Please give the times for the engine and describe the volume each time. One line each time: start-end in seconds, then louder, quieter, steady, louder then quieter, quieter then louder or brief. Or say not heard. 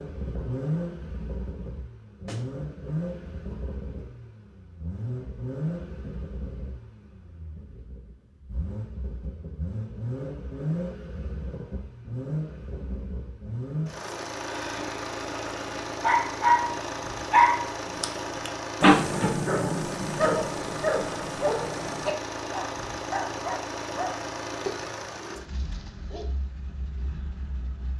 0.0-27.9 steady.